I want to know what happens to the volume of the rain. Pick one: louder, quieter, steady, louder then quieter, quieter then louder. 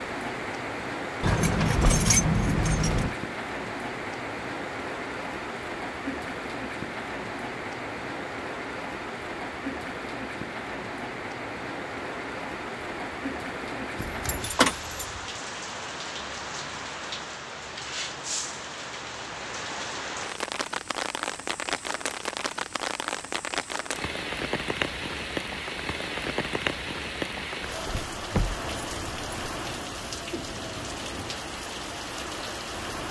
steady.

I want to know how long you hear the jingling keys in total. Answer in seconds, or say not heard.
5 s.